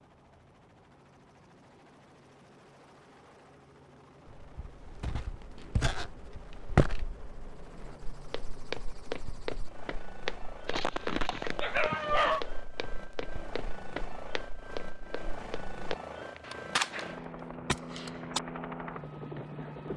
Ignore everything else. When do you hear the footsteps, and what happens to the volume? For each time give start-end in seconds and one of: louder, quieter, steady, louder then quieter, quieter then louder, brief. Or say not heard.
4.3-16.4 quieter.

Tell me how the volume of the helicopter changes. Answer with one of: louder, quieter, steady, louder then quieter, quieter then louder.
louder.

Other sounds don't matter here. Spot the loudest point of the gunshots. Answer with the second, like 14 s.
17 s.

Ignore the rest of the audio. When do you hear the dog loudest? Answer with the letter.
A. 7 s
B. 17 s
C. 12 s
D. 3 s
C.